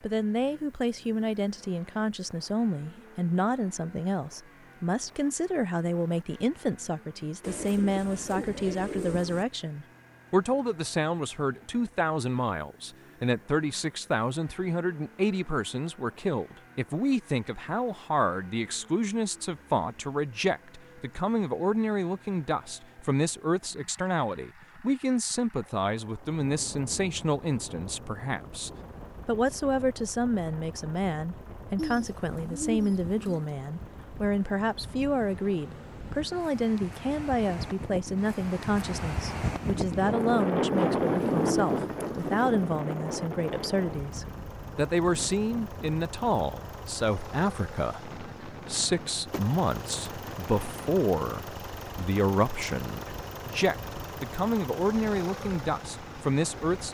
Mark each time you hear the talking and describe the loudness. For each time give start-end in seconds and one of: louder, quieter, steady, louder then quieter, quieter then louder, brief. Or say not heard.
0.0-56.8 steady.